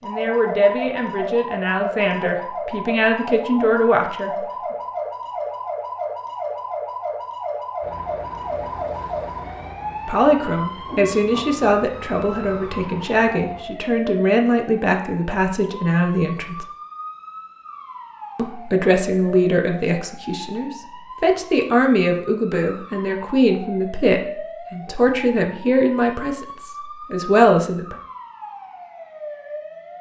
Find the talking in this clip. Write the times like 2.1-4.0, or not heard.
0.0-4.3, 10.1-16.6, 18.4-27.9.